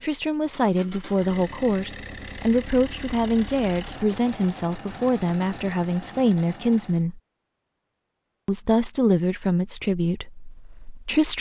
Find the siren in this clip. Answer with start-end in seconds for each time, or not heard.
not heard.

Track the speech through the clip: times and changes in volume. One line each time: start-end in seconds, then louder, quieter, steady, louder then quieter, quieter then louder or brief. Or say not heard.
0.0-7.2 steady
8.4-11.3 brief.